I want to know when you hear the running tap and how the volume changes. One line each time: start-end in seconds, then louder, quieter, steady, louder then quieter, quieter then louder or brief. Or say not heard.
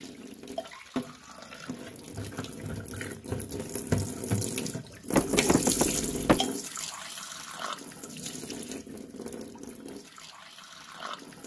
0.0-11.4 louder then quieter.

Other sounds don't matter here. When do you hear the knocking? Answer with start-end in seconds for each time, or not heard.
5.1-6.4.